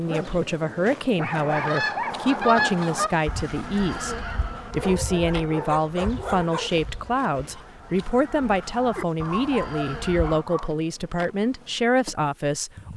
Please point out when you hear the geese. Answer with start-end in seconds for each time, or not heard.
1.3-10.4.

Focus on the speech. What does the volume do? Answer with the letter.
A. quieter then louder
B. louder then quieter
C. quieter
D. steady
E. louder
D.